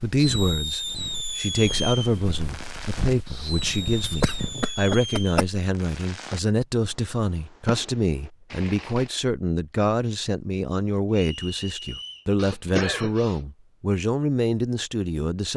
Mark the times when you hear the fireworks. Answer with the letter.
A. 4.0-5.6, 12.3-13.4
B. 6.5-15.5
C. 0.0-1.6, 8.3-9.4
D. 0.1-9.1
D.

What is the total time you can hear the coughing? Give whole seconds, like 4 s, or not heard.
3 s.